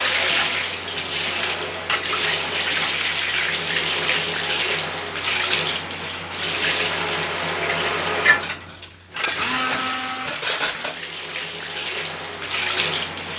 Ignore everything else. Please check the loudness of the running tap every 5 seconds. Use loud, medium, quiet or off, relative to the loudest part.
loud, loud, medium.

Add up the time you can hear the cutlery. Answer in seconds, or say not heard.
3 s.